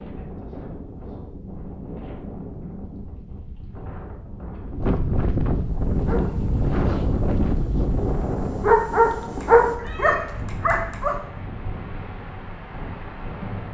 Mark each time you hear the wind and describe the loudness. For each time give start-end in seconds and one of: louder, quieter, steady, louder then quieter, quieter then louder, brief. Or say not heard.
0.0-13.6 louder then quieter.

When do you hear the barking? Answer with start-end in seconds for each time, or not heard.
5.5-11.2.